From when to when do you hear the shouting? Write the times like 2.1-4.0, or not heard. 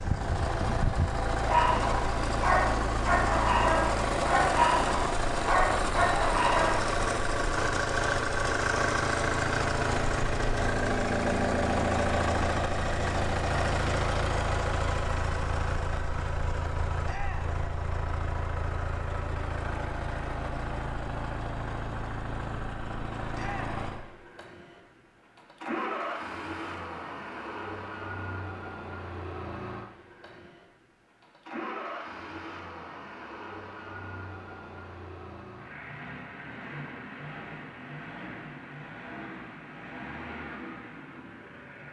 17.1-17.6, 23.3-23.8.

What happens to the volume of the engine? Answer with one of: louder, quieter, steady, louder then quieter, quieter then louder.
quieter.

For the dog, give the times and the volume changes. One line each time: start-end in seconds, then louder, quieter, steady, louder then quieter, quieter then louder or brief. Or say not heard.
1.4-7.0 steady.